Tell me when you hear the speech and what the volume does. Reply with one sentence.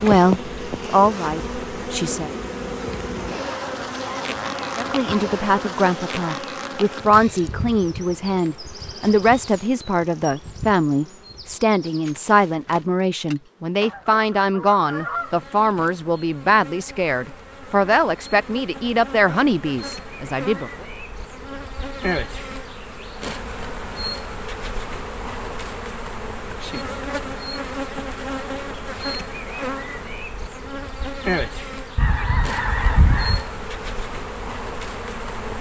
You can hear the speech briefly from 0.0 to 2.3 s; and from 4.8 to 20.9 s, at a steady volume.